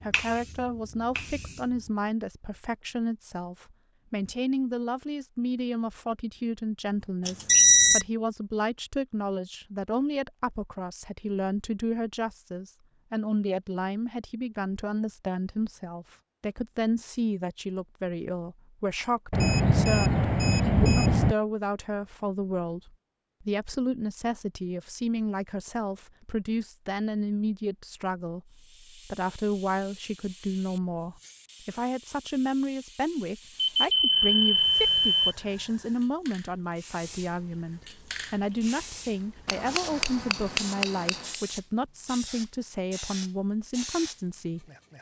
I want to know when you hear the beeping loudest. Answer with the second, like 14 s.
8 s.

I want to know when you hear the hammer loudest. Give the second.
41 s.